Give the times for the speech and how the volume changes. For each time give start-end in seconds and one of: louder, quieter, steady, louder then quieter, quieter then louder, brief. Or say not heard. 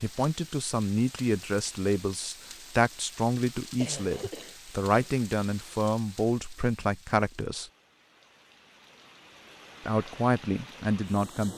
0.0-7.7 steady
9.8-11.5 brief.